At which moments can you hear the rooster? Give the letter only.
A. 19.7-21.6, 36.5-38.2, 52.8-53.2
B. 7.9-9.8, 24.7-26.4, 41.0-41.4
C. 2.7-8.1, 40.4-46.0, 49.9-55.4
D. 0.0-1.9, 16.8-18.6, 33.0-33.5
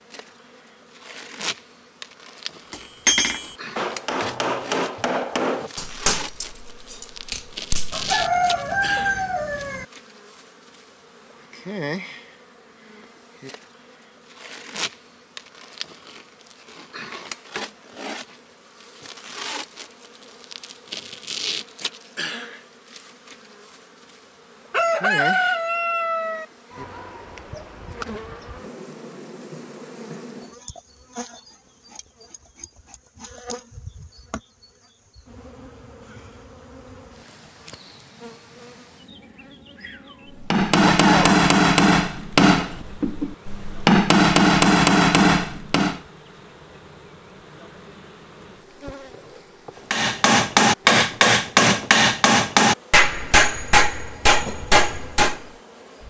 B.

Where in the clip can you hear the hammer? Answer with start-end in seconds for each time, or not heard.
2.7-8.1, 40.4-46.0, 49.9-55.4.